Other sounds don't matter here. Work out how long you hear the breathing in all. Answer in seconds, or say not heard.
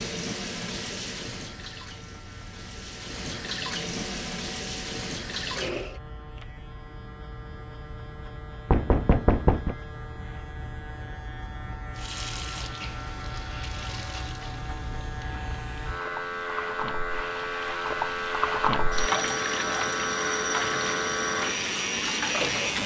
not heard.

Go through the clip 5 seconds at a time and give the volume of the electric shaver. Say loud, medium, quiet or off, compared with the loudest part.
quiet, quiet, medium, loud, loud.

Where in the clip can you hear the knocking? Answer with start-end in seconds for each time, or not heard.
8.7-9.8.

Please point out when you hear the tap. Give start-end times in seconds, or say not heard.
0.0-6.0, 11.9-22.8.